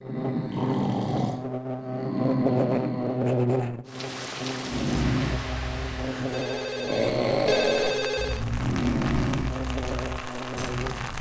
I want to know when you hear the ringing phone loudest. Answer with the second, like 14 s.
8 s.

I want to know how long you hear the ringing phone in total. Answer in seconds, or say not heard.
2 s.